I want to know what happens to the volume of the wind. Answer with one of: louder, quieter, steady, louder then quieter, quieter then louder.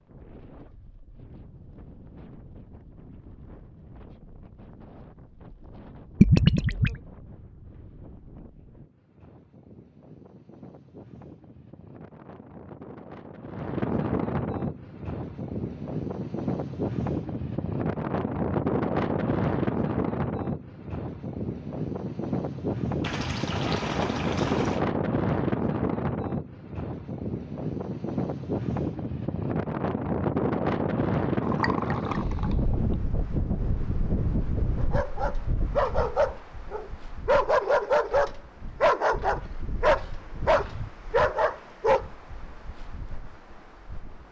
louder then quieter.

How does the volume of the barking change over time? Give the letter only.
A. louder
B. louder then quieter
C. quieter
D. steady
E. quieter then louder
D.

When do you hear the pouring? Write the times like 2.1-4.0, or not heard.
6.2-7.0, 23.0-24.9, 31.4-33.0.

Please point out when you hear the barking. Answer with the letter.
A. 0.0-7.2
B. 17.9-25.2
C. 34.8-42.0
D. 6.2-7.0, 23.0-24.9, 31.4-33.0
C.